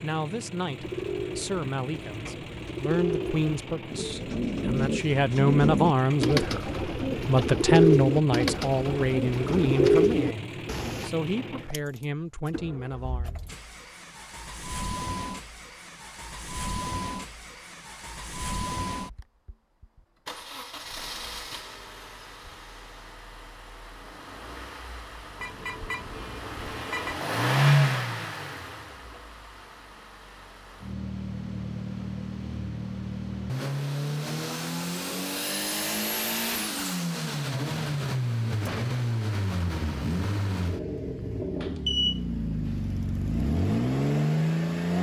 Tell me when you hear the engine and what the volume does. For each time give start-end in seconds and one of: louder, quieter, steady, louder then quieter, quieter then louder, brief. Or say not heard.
0.0-44.9 louder.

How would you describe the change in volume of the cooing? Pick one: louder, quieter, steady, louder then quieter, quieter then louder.
louder.